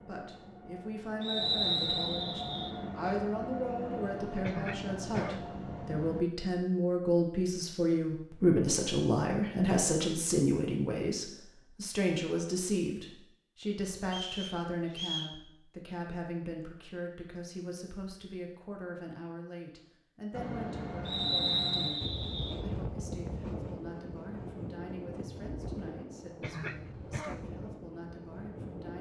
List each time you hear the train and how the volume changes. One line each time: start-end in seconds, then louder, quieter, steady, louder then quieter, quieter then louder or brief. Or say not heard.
0.0-6.2 louder
20.3-28.9 quieter.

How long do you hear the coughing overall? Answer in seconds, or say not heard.
2 s.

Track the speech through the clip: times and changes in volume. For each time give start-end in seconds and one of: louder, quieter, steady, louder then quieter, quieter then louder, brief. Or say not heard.
0.1-28.9 louder then quieter.